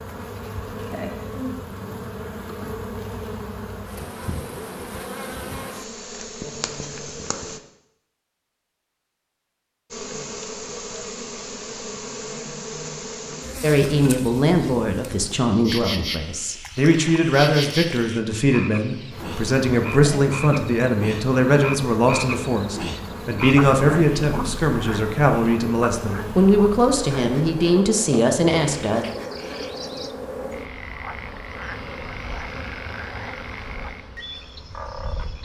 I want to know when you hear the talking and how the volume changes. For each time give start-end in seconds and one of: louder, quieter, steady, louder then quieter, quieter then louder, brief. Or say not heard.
13.6-29.1 steady.